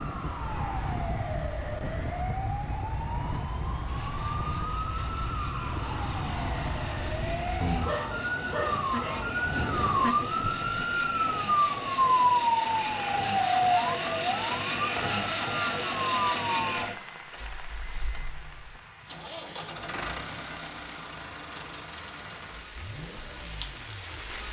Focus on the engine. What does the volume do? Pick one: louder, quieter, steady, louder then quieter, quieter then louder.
louder then quieter.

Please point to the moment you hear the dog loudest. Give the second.
8 s.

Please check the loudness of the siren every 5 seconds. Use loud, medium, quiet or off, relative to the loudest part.
medium, medium, loud, medium, off.